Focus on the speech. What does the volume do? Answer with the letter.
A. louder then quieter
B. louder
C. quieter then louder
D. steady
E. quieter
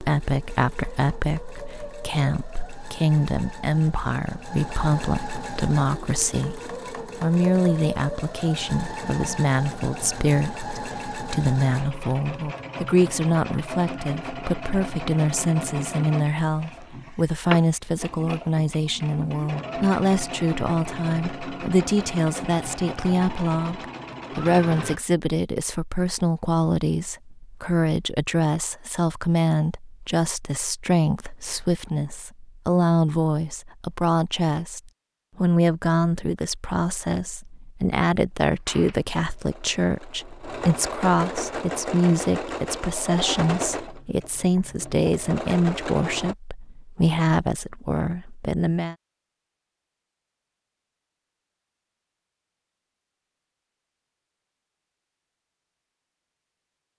D.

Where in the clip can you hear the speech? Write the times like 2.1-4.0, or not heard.
0.0-49.0.